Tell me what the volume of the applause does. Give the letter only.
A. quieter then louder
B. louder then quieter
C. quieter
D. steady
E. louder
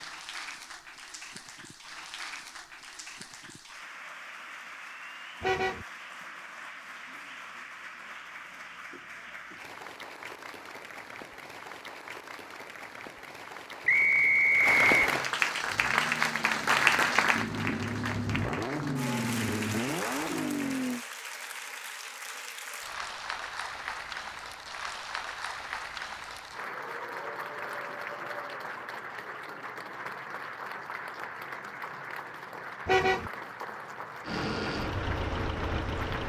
B.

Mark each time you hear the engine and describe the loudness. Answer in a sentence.
The engine can be heard from 15.6 to 21.1 s, getting louder; and briefly from 34.2 to 36.2 s.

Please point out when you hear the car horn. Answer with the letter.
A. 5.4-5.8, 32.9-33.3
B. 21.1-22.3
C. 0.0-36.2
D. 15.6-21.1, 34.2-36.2
A.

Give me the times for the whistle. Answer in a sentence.
The whistle can be heard from 13.8 to 15.0 s.